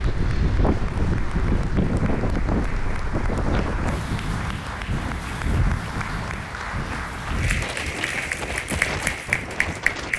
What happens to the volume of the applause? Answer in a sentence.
The loudness of the applause goes up.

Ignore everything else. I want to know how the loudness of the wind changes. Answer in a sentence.
The volume of the wind goes down.